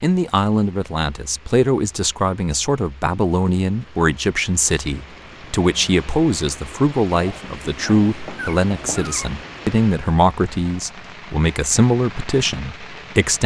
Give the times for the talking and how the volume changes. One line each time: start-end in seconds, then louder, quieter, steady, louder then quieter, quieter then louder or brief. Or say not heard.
0.0-13.4 steady.